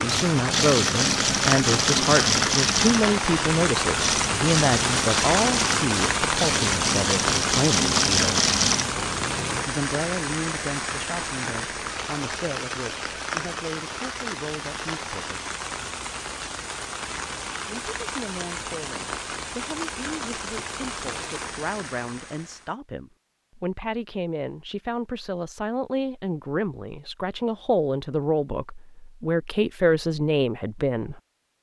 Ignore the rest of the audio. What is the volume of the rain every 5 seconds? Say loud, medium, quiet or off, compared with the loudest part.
loud, loud, medium, medium, medium, off, off.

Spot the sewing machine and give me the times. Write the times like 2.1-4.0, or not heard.
0.0-9.7.